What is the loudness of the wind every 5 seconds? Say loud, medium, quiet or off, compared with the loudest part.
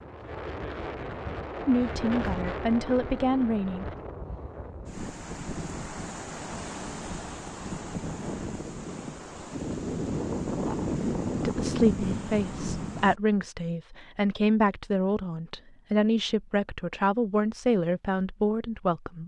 medium, medium, loud, off.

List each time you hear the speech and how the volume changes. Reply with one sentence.
You can hear the speech briefly from 1.6 to 3.9 s; and from 11.4 to 19.2 s, at a steady volume.